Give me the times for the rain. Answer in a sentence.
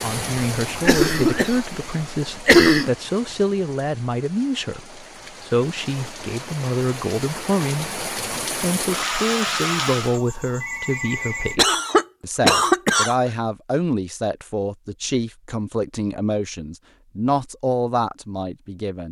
The rain can be heard from 0.0 to 10.2 s.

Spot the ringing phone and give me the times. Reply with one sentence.
The ringing phone can be heard from 10.1 to 11.6 s.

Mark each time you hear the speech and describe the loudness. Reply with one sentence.
You can hear the speech from 0.0 to 19.0 s, at a steady volume.